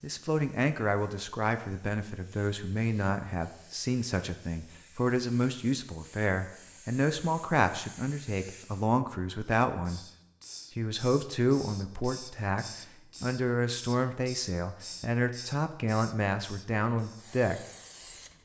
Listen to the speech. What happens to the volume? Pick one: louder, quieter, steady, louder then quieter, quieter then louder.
steady.